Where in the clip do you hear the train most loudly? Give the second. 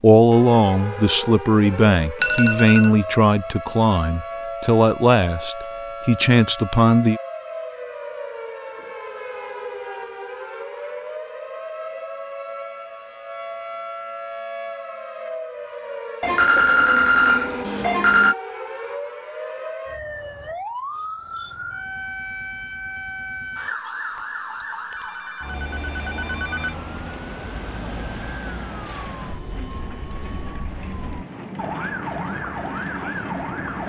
33 s.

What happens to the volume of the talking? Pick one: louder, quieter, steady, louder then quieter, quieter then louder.
steady.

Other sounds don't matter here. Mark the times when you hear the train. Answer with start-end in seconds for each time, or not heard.
27.7-33.8.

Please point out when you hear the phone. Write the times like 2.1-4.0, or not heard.
2.2-2.9, 16.2-18.4, 24.9-26.8.